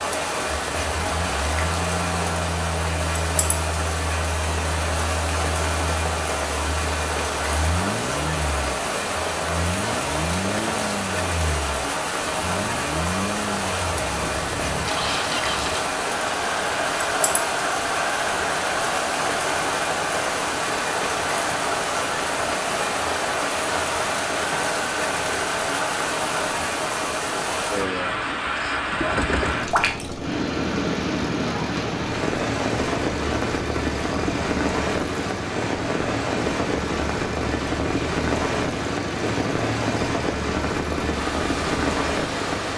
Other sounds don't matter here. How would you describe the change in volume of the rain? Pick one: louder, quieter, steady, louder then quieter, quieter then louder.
steady.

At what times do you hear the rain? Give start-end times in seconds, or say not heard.
0.0-42.7.